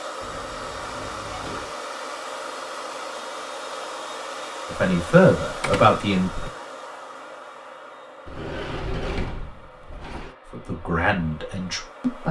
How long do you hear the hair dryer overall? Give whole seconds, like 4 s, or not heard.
12 s.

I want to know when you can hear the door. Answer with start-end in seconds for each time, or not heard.
0.2-1.8, 5.6-6.5, 8.2-10.3.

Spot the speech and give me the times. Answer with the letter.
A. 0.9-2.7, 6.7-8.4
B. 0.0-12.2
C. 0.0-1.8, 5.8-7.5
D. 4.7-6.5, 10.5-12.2
D.